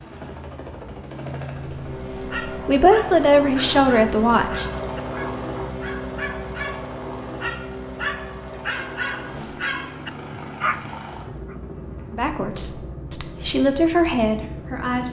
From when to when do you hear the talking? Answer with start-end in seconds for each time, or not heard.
2.1-4.7, 12.1-15.0.